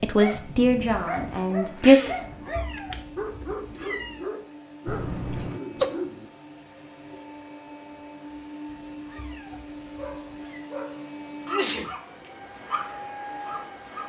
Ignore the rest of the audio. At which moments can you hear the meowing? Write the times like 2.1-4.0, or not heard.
2.0-4.2, 8.7-10.7.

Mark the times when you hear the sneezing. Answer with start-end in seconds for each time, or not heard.
1.4-2.2, 4.8-5.8, 11.4-11.9.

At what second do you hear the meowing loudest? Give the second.
4 s.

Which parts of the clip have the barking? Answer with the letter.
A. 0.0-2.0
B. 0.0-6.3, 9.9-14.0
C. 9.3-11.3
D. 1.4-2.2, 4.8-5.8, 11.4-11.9
B.